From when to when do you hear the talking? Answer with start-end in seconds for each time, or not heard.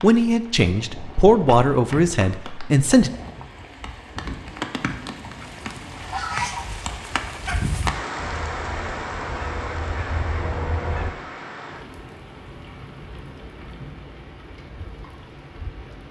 0.0-3.1.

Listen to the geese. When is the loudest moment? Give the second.
6 s.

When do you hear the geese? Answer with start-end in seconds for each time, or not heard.
5.4-11.1.